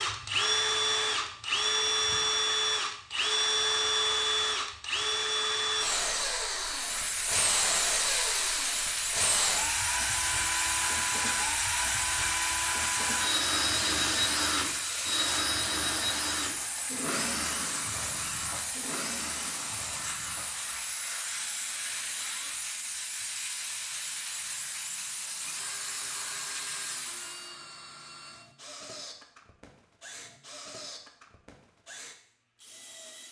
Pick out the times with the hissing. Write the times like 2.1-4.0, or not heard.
6.6-27.6.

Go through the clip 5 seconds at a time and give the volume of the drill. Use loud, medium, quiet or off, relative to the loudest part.
loud, loud, loud, medium, quiet, quiet, quiet.